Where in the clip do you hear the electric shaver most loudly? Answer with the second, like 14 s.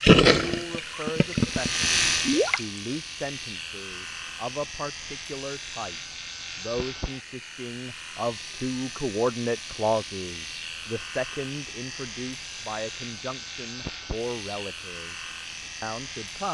2 s.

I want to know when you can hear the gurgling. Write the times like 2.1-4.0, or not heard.
0.0-2.8.